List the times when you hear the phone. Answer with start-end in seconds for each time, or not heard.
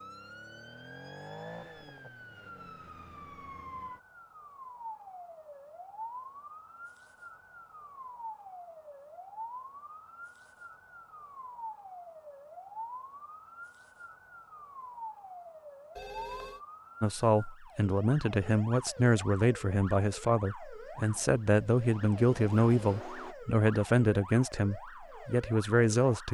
15.9-16.6.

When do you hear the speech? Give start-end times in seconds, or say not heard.
17.0-26.2.